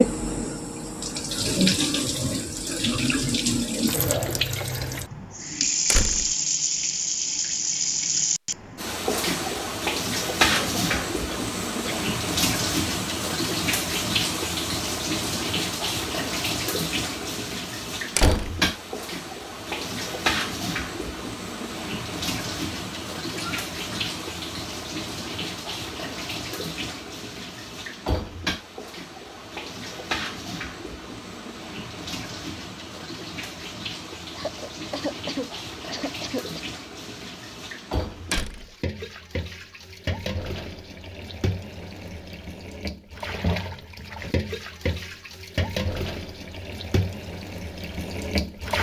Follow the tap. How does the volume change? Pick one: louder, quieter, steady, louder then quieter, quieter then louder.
quieter.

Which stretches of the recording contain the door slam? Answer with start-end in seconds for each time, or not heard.
5.9-6.3, 18.1-18.6, 38.3-38.8.